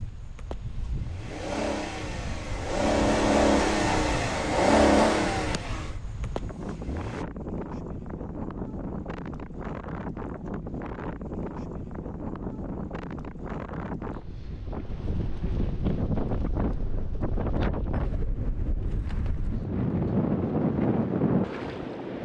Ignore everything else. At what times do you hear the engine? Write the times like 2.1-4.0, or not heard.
0.0-7.2.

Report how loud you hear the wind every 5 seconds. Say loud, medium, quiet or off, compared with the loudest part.
quiet, medium, medium, medium, loud.